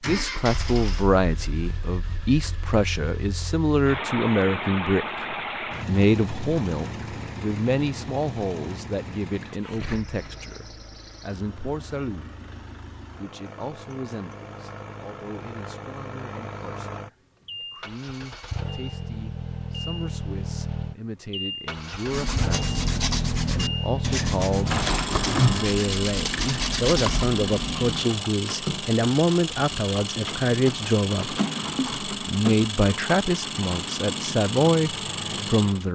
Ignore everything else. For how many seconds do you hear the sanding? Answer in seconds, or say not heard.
6 s.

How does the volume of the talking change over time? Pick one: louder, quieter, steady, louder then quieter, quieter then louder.
quieter then louder.